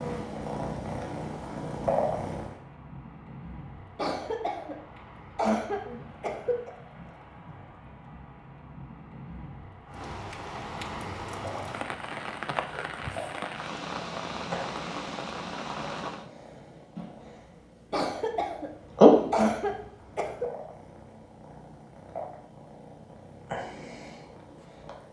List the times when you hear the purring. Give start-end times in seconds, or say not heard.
0.0-2.5, 11.3-25.0.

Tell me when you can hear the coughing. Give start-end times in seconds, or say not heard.
4.0-6.7, 17.9-20.4.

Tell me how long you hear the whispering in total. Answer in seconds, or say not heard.
not heard.